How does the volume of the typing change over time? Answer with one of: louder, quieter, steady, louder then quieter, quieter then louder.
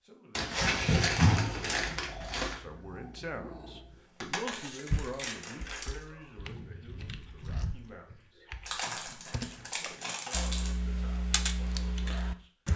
louder.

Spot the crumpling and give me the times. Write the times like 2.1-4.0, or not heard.
0.3-2.5, 4.5-6.0, 8.7-10.7.